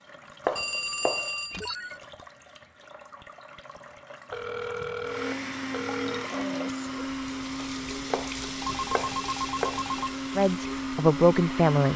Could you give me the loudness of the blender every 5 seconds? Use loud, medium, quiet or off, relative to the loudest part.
off, loud, loud.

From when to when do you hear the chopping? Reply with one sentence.
The chopping can be heard from 0.5 to 1.3 s and from 7.6 to 9.8 s.